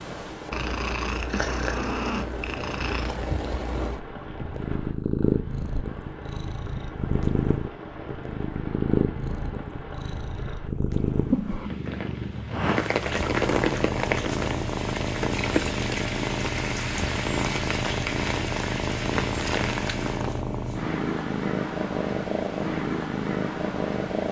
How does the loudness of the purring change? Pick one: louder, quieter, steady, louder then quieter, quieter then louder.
steady.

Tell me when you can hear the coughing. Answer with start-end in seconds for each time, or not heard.
not heard.